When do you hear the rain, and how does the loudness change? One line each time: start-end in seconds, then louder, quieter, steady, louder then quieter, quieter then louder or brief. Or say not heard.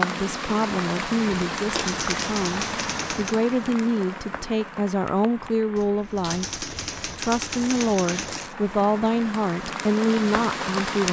0.0-11.0 quieter then louder.